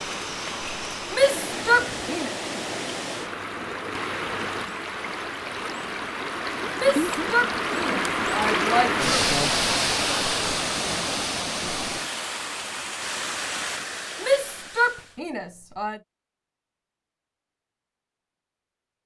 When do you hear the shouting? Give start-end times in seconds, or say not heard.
1.1-2.3, 6.8-9.2, 14.2-16.0.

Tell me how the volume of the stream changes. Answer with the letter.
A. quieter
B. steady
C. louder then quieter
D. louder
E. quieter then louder
C.